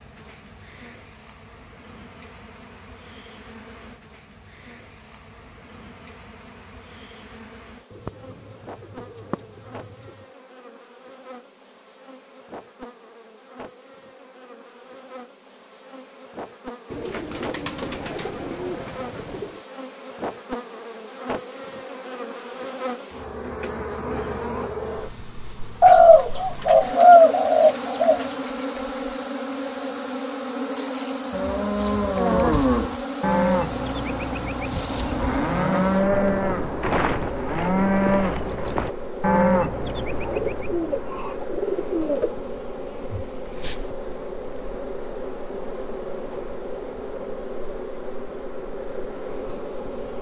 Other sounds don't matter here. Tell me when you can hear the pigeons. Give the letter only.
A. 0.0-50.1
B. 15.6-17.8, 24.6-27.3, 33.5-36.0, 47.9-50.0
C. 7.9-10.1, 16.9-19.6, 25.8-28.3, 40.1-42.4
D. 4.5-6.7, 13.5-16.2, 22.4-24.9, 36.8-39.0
C.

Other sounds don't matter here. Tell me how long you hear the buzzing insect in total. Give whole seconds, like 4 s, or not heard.
50 s.